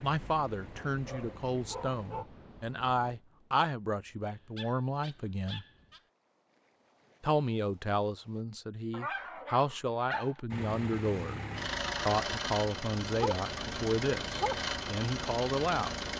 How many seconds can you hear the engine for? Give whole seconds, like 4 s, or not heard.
8 s.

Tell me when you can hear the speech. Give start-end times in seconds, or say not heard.
0.0-5.7, 7.2-11.4, 12.1-15.9.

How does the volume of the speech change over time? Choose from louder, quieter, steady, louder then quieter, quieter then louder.
steady.